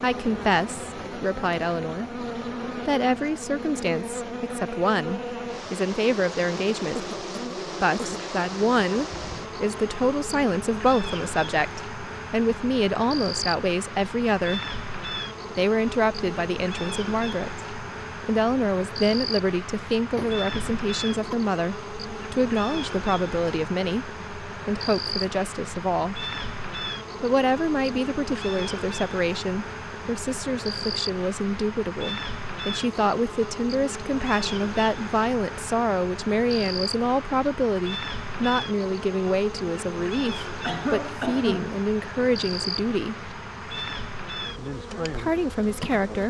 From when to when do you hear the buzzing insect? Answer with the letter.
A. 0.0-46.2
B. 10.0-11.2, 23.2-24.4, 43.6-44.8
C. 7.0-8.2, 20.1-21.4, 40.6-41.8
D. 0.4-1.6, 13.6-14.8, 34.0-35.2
A.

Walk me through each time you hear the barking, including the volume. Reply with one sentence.
You can't hear the barking here.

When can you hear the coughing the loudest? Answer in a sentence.
The loudest moment of the coughing is at 41 seconds.